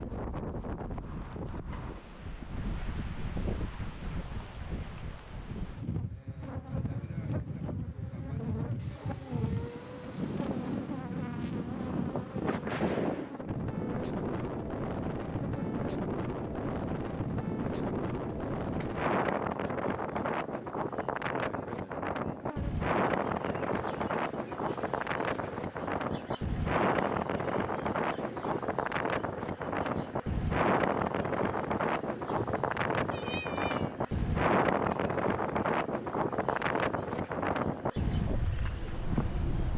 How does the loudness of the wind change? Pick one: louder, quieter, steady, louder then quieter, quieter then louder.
louder.